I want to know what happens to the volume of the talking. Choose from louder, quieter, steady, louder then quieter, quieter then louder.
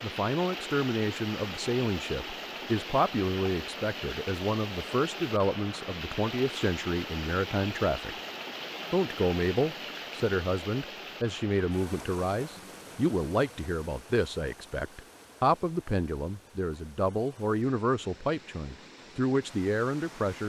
steady.